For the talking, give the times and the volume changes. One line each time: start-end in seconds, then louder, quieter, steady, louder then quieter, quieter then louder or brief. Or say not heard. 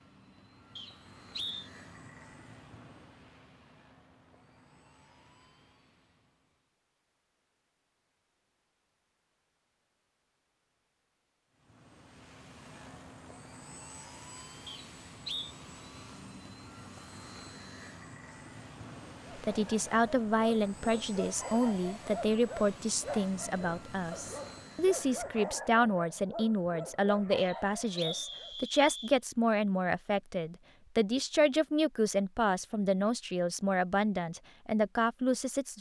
19.4-35.7 steady.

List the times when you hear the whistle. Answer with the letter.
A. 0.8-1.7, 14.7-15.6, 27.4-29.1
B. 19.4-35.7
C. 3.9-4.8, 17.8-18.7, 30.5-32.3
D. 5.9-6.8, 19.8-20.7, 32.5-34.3
A.